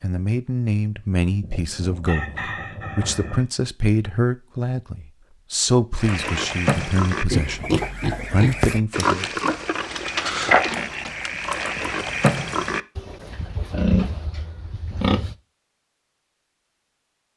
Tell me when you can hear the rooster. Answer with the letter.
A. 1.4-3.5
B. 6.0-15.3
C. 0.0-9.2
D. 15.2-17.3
A.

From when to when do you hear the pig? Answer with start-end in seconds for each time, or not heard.
6.0-15.3.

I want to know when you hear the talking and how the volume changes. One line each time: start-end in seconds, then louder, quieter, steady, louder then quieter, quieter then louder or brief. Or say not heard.
0.0-9.2 steady.